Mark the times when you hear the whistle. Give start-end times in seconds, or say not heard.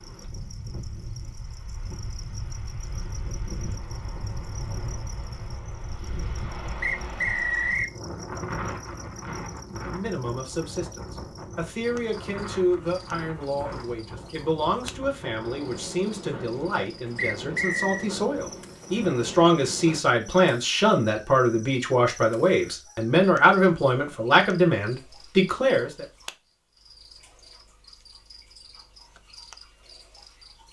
6.8-8.0, 17.1-18.1.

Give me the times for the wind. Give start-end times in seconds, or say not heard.
0.0-20.0.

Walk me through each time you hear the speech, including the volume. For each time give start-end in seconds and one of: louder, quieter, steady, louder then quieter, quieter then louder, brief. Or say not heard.
9.8-26.1 louder.